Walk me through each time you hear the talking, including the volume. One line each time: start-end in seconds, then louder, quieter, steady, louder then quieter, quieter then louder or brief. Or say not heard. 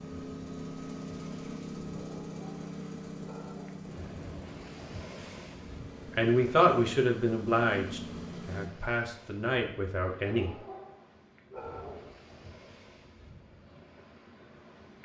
6.2-10.6 quieter then louder.